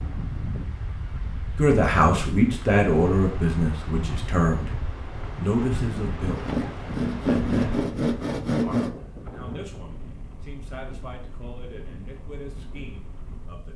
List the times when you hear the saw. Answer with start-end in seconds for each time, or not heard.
6.2-8.9.